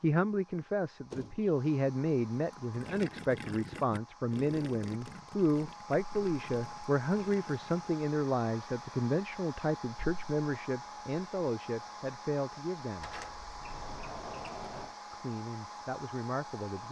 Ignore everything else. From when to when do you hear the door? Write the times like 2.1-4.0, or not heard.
1.1-1.6, 12.9-14.9.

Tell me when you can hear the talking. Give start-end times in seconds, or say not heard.
0.0-13.1, 15.1-16.8.